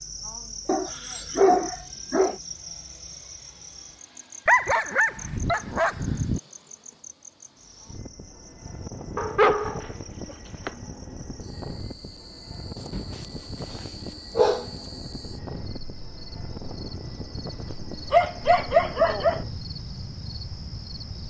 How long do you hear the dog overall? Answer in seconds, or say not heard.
9 s.